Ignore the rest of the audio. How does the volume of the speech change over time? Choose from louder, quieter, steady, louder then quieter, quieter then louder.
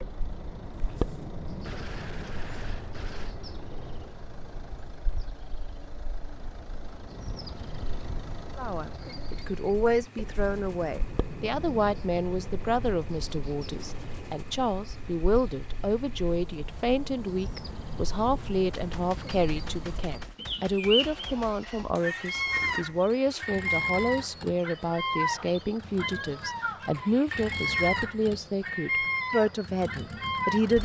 steady.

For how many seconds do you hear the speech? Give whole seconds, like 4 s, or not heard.
22 s.